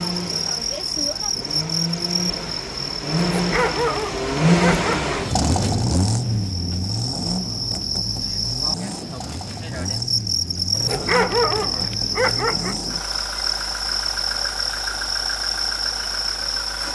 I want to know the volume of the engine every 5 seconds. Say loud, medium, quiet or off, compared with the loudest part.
loud, loud, medium, medium.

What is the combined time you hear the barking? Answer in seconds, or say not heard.
5 s.